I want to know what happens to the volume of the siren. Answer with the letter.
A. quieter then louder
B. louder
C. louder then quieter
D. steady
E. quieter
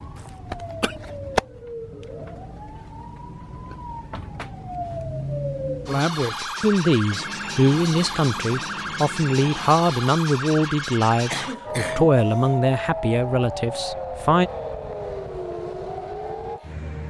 D.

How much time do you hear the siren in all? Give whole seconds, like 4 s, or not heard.
17 s.